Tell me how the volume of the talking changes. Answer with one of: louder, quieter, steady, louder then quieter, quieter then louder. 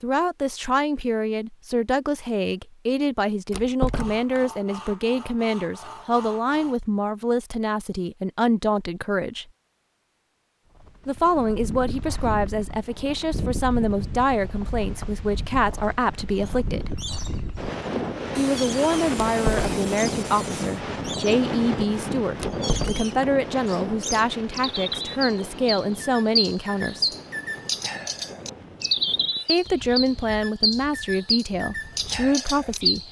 steady.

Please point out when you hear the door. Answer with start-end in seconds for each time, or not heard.
3.5-4.4, 19.2-19.8, 22.4-23.1.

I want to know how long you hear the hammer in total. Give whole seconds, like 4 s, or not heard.
not heard.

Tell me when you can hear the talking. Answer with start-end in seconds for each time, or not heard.
0.0-9.4, 11.1-16.9, 18.4-27.1, 29.4-33.0.